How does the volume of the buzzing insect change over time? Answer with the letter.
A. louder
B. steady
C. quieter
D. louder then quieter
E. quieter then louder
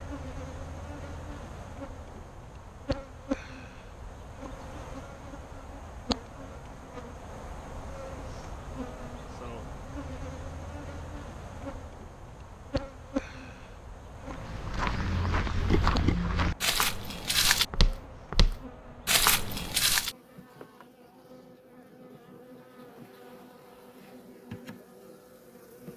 C.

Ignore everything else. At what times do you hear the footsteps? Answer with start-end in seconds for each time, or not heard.
14.2-20.1.